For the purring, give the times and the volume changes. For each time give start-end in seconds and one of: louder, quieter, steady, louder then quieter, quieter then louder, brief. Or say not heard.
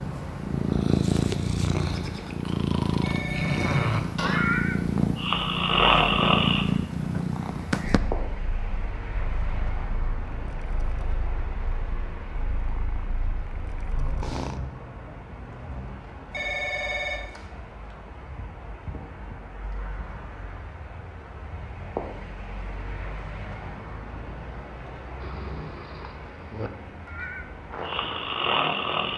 0.0-14.6 quieter.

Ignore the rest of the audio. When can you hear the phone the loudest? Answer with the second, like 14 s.
17 s.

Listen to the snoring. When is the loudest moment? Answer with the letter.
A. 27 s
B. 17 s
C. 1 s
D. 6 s
D.